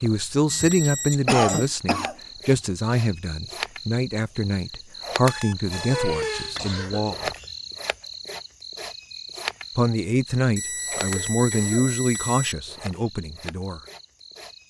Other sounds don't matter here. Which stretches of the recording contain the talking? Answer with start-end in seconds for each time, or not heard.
0.0-7.3, 9.8-13.8.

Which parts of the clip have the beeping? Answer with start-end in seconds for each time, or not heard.
0.5-1.7, 5.2-6.5, 10.6-12.6.